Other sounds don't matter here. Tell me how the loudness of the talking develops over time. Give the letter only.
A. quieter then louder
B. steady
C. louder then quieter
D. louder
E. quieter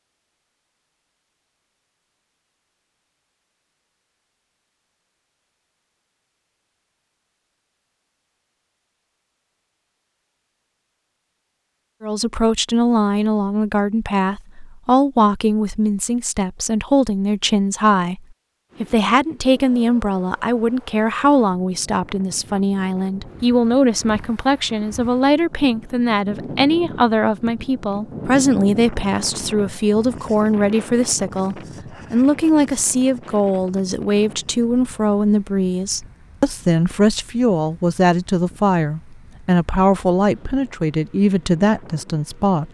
B.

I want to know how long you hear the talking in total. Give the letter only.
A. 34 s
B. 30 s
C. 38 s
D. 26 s
B.